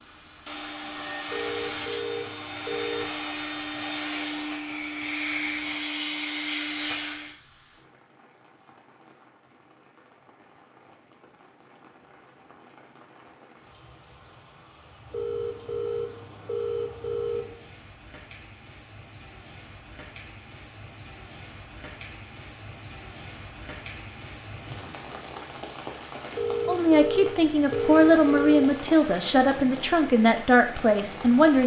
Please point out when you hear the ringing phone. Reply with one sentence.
The ringing phone can be heard from 1.2 to 3.1 s, from 15.1 to 17.6 s and from 26.4 to 28.8 s.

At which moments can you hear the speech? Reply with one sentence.
You can hear the speech from 26.6 to 31.6 s.